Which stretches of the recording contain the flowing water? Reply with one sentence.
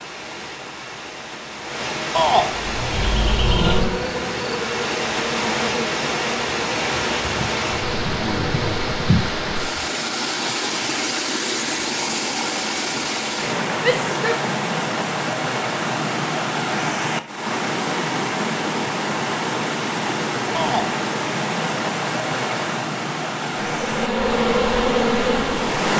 The flowing water can be heard from 0.0 to 25.9 s.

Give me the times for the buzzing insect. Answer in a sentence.
You can hear the buzzing insect from 2.5 to 9.4 s and from 23.6 to 25.8 s.